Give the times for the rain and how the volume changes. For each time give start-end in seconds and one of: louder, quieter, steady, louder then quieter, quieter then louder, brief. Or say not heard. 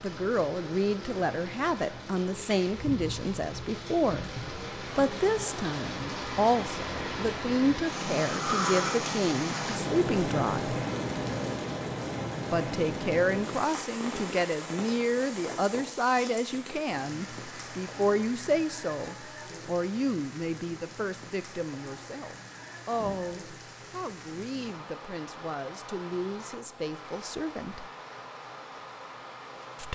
0.0-29.8 louder then quieter.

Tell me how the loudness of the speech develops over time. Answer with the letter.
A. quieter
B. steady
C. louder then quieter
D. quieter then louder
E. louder
A.